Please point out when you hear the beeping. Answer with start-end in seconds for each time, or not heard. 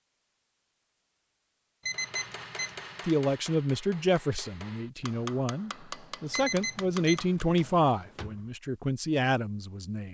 1.9-3.1, 6.3-7.7.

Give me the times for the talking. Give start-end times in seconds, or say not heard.
3.0-10.0.